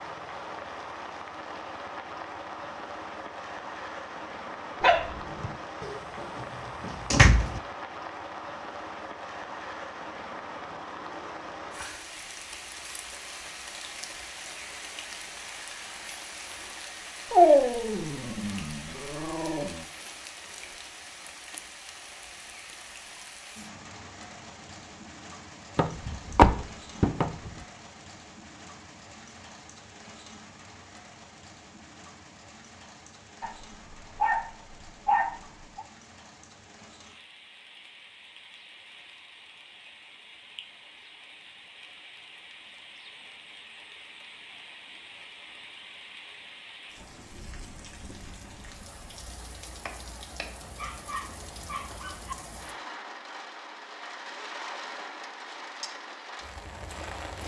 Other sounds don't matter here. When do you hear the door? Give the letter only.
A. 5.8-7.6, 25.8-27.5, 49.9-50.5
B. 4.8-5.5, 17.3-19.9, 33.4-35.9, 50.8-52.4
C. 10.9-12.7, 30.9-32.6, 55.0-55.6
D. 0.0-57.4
A.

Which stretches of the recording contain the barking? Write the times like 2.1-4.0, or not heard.
4.8-5.5, 17.3-19.9, 33.4-35.9, 50.8-52.4.